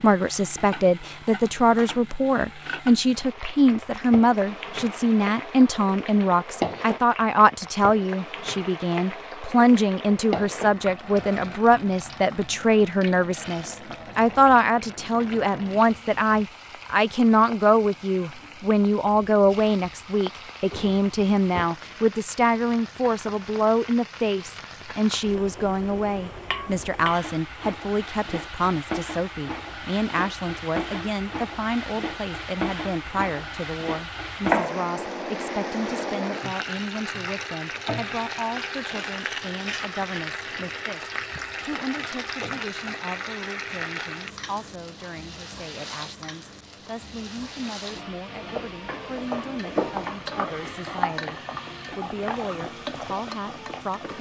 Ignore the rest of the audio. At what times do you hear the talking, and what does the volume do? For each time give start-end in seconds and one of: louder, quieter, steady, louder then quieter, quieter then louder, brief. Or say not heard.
0.0-54.1 quieter.